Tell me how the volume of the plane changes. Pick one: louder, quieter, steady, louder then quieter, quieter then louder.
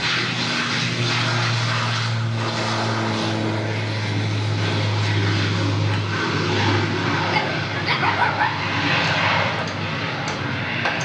steady.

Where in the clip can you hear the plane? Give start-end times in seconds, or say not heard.
0.0-11.0.